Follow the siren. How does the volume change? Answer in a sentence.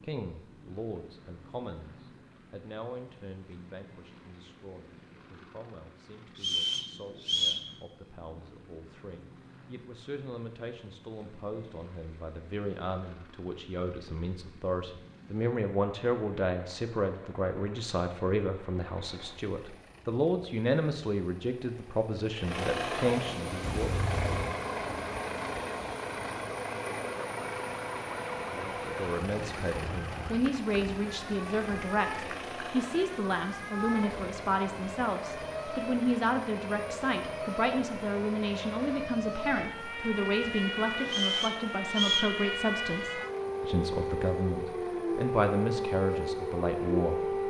The loudness of the siren goes up.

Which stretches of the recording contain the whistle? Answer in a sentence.
You can hear the whistle from 6.3 to 7.7 s and from 41.0 to 42.4 s.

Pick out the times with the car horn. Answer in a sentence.
You can hear the car horn from 23.6 to 24.6 s.